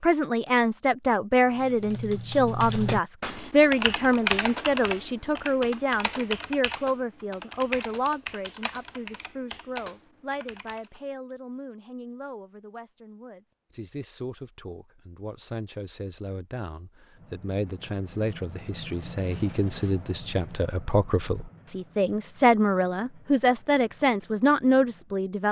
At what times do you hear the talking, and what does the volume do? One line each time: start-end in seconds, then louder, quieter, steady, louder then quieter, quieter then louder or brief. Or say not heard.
0.0-25.4 quieter then louder.